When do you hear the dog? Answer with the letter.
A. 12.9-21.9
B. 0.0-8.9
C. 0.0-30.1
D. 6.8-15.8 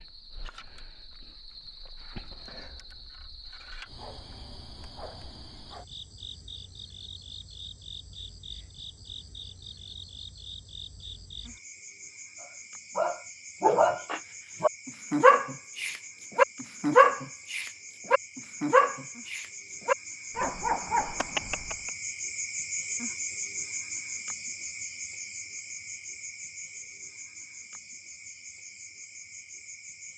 A.